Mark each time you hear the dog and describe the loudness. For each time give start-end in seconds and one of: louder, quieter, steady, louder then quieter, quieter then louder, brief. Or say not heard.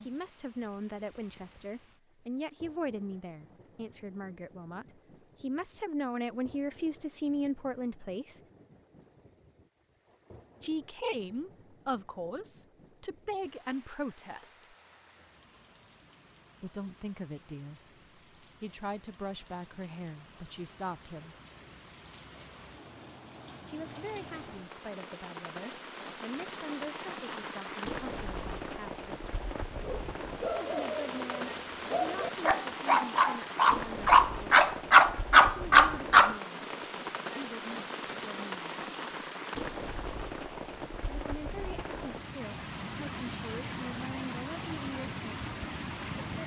29.8-36.4 louder.